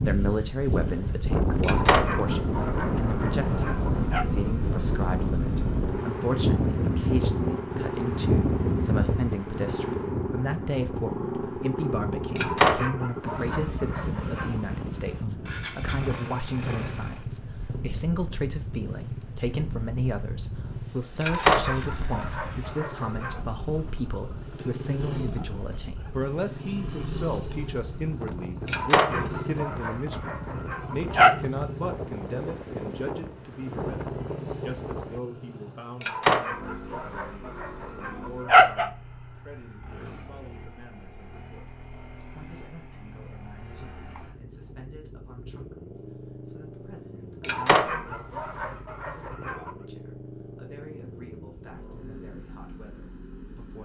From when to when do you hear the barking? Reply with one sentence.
The barking can be heard from 1.6 to 4.2 s, from 12.3 to 14.5 s, from 21.2 to 23.4 s, from 28.6 to 31.4 s, from 36.0 to 38.9 s and from 47.4 to 49.7 s.